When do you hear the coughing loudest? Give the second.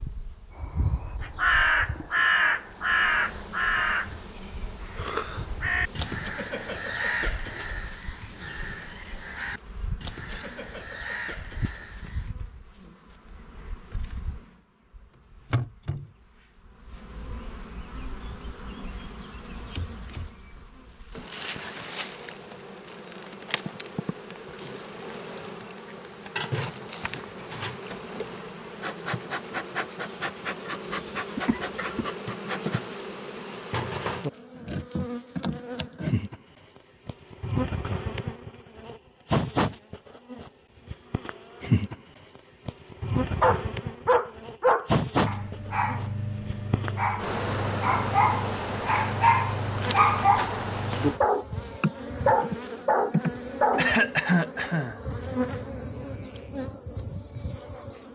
54 s.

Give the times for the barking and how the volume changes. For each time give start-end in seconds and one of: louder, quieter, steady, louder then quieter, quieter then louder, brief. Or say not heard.
43.4-53.9 quieter then louder.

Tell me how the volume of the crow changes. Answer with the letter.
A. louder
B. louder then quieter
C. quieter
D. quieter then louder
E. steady
C.